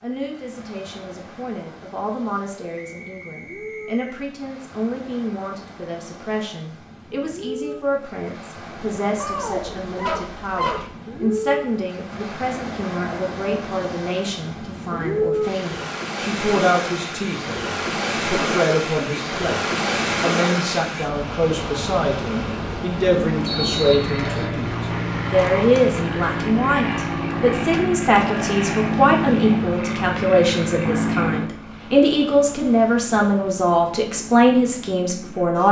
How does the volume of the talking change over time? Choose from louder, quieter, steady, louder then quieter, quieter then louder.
louder.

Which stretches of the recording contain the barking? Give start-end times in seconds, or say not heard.
9.2-10.9.